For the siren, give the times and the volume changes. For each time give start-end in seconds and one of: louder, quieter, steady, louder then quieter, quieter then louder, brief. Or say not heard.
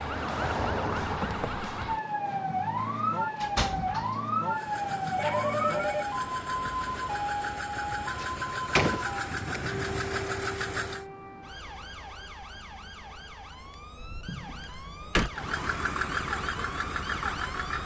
0.0-17.8 quieter.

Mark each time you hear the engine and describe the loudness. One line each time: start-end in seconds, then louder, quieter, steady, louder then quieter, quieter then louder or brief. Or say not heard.
4.5-11.1 louder
15.3-17.8 brief.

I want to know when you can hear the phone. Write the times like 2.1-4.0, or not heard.
5.2-6.2.